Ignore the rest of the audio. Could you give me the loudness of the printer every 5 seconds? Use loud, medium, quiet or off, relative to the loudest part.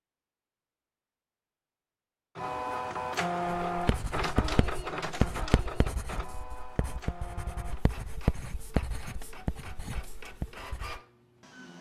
loud, medium, quiet.